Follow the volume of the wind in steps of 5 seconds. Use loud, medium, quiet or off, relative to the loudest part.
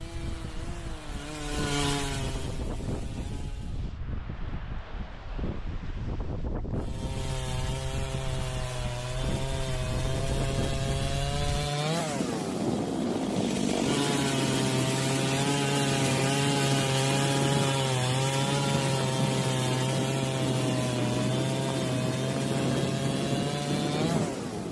medium, medium, loud, loud, loud.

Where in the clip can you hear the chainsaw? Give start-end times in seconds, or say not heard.
0.0-3.9, 6.8-24.6.